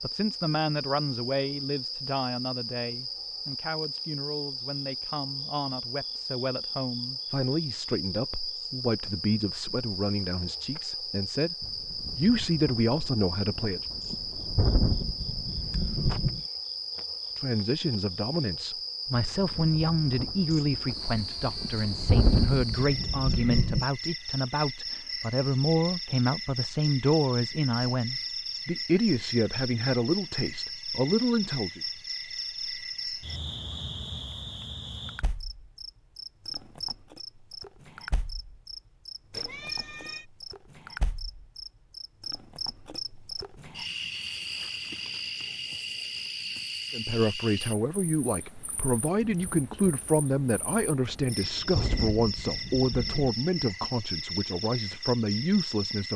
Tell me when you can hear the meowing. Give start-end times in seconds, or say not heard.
39.3-40.2.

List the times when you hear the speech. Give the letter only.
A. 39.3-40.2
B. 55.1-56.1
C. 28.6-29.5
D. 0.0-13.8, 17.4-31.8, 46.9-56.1
D.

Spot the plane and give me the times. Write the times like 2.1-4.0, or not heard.
not heard.